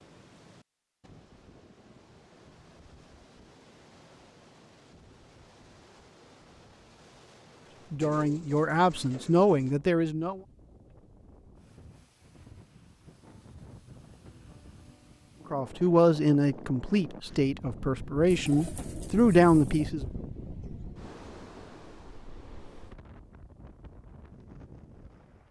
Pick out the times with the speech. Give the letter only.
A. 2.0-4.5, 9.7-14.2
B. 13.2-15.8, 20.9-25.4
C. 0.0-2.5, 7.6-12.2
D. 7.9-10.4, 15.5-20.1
D.